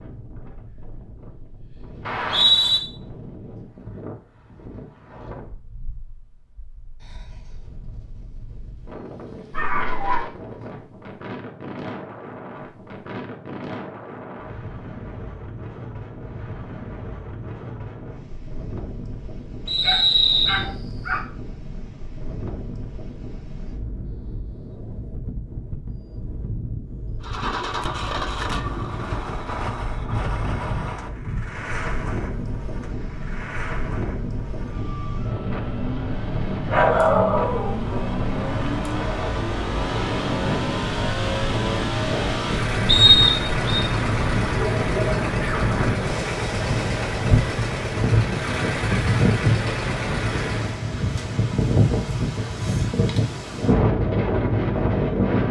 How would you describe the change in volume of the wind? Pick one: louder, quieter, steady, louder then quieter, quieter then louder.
louder.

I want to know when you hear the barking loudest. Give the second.
37 s.